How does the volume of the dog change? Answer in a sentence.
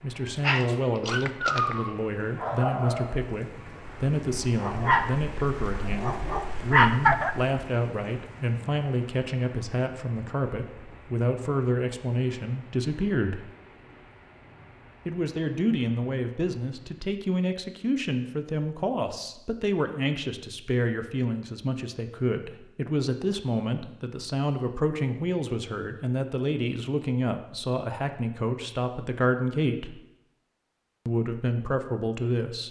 The loudness of the dog goes down, then up.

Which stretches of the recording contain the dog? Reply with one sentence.
You can hear the dog from 0.2 to 7.5 s.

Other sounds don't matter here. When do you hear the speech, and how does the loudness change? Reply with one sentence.
You can hear the speech from 0.0 to 13.4 s, at a steady volume; from 15.1 to 29.9 s, at a steady volume; and briefly from 31.1 to 32.6 s.